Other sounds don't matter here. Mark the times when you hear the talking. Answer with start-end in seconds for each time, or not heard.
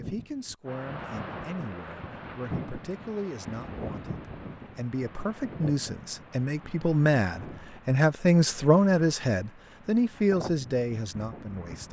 0.0-11.8.